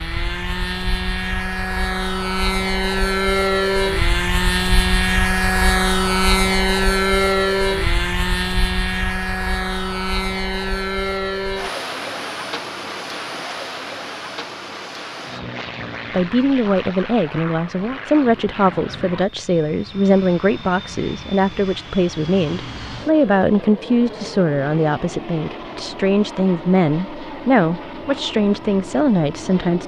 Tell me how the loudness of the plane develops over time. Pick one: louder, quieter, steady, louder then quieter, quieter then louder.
quieter.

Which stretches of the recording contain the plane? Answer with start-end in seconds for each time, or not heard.
0.0-29.8.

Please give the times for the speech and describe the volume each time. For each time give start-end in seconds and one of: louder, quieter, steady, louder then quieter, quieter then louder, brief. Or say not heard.
16.1-29.8 steady.